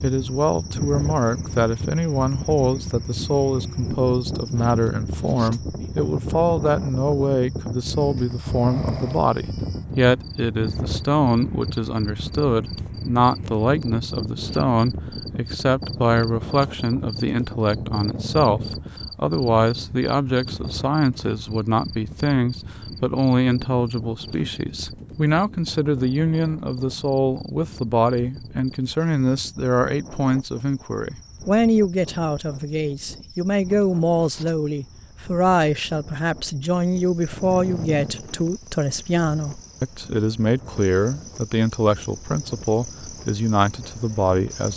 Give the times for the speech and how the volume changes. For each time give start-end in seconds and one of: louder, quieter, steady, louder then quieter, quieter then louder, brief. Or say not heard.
0.0-44.7 steady.